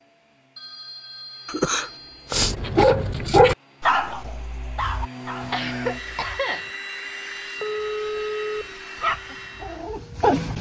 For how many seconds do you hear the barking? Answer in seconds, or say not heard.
6 s.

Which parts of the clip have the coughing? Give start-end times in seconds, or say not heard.
1.4-2.5, 5.4-6.7.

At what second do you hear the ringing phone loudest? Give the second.
8 s.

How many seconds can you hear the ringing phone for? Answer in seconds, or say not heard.
3 s.